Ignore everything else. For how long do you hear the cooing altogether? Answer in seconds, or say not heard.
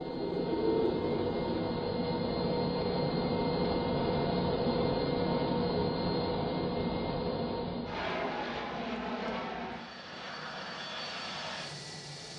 2 s.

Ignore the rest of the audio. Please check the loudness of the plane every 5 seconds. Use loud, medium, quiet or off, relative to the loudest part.
loud, loud, medium.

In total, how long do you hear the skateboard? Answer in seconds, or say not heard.
not heard.